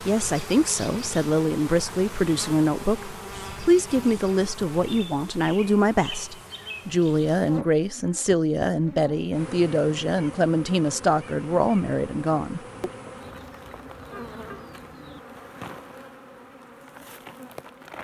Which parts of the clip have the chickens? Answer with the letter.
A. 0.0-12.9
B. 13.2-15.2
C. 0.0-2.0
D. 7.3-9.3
B.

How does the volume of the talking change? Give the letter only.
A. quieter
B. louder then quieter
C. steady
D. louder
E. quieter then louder
C.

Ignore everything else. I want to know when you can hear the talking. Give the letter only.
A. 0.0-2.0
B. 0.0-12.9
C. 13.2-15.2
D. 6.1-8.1
B.